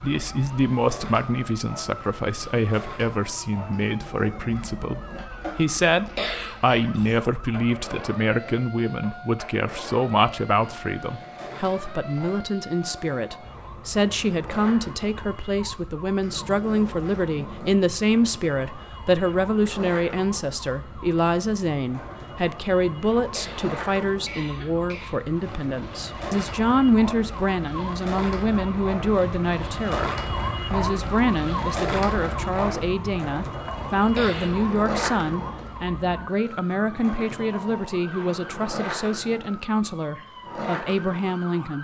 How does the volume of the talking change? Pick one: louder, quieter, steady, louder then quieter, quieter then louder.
steady.